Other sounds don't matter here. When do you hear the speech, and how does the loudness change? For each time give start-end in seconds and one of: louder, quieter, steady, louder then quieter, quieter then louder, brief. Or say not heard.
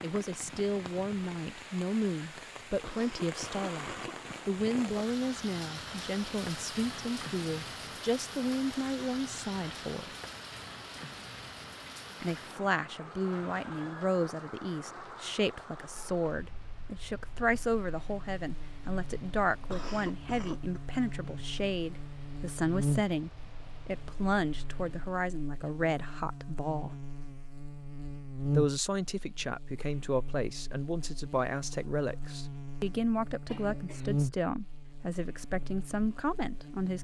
0.0-10.2 steady
12.2-27.0 steady
28.6-36.9 steady.